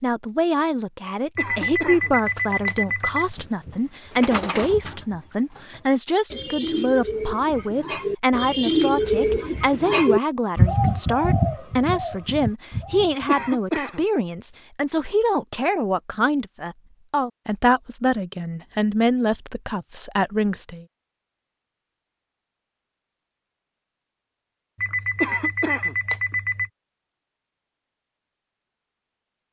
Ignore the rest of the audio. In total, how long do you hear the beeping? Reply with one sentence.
The beeping can be heard for 4 seconds in total.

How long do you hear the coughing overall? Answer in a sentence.
The coughing can be heard for 2 seconds in total.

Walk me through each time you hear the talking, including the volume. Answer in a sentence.
The talking can be heard from 0.0 to 20.9 s, at a steady volume.